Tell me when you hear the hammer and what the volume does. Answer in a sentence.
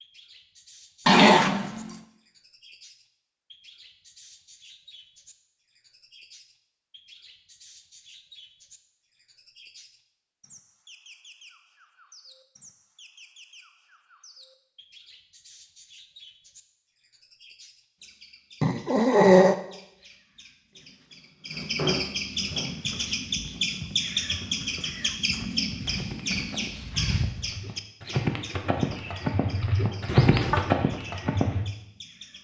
The hammer can't be heard in this clip.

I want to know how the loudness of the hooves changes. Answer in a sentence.
The volume of the hooves goes up.